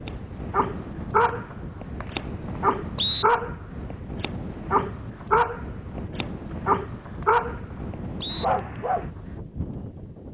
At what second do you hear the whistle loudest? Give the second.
3 s.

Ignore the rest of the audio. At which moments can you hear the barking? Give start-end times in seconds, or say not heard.
0.1-9.1.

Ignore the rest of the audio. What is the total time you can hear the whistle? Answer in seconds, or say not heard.
4 s.